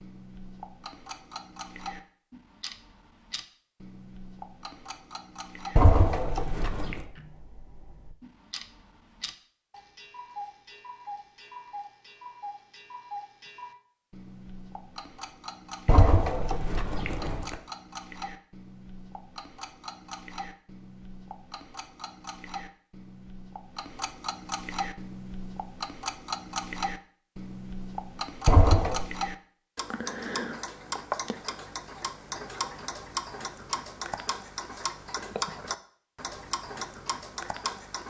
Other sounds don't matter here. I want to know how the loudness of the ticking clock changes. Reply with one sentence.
The loudness of the ticking clock goes up.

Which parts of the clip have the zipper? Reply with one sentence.
You can hear the zipper from 5.8 to 7.0 s, from 15.8 to 17.6 s and from 28.4 to 29.1 s.